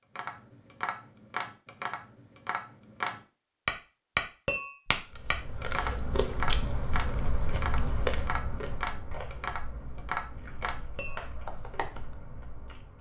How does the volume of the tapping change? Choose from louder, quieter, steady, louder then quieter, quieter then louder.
louder then quieter.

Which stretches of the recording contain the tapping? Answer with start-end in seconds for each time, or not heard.
0.1-12.2.